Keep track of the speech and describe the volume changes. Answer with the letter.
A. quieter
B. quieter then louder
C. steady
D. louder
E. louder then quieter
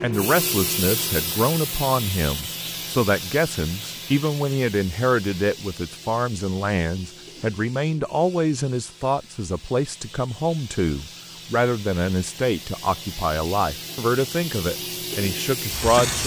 C.